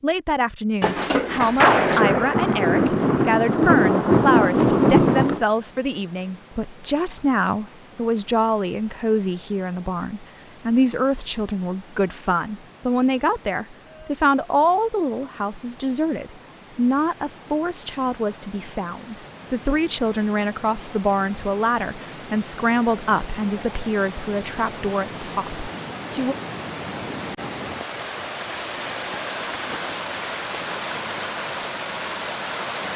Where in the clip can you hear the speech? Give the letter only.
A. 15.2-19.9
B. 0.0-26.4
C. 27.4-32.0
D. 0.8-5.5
B.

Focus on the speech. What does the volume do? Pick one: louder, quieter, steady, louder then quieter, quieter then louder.
steady.